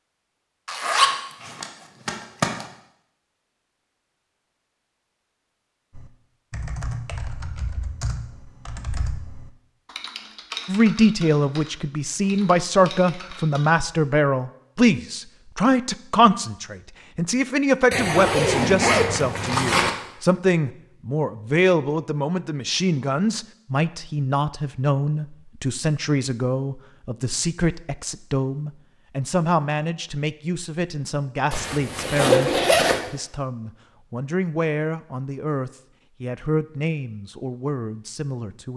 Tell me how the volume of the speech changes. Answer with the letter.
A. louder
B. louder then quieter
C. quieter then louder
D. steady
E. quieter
E.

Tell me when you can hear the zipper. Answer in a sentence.
The zipper can be heard from 0.7 to 2.6 s, from 17.9 to 19.9 s and from 31.5 to 33.0 s.